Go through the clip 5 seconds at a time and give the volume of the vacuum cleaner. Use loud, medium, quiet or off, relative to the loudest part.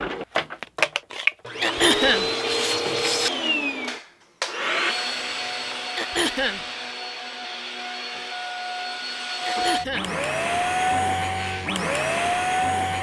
loud, medium, loud.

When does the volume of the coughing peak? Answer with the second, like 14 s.
2 s.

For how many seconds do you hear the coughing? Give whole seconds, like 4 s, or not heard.
2 s.